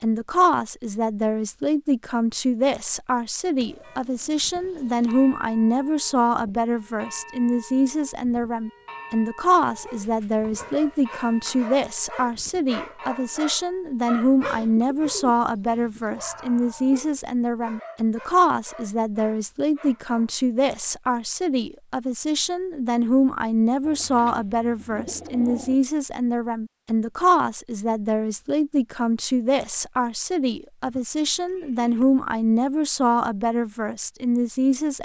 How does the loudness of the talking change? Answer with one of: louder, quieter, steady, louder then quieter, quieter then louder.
steady.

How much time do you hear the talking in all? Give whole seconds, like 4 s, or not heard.
35 s.